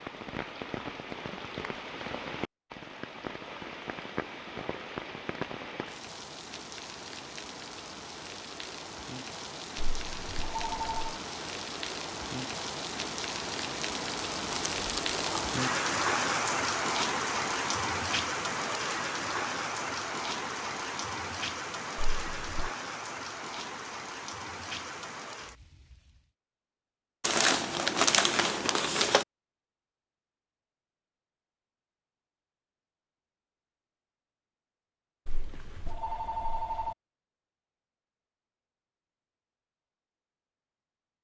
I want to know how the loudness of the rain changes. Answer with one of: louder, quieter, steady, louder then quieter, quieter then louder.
louder then quieter.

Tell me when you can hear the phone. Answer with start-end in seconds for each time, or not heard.
9.8-11.2, 21.9-22.7, 35.2-37.0.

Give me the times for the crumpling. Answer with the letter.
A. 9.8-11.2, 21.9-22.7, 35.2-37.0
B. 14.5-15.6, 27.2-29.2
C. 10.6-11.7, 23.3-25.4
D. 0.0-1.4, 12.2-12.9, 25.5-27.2
B.